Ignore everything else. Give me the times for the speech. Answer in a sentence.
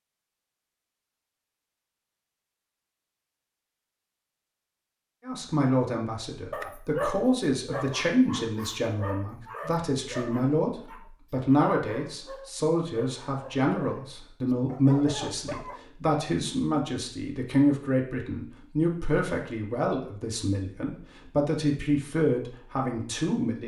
The speech can be heard from 5.2 to 23.6 s.